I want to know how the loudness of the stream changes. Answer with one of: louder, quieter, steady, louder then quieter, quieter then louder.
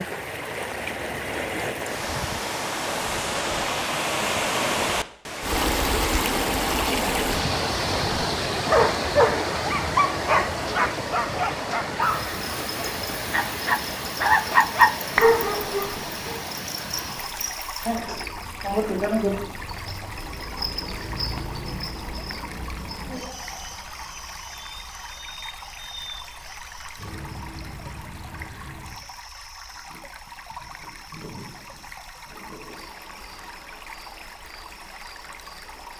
quieter.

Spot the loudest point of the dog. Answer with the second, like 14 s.
15 s.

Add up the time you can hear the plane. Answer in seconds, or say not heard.
not heard.